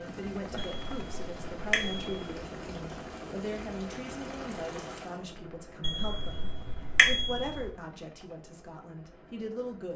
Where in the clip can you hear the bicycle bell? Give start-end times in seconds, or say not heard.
0.6-2.4, 5.8-7.7.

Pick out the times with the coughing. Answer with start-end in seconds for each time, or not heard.
not heard.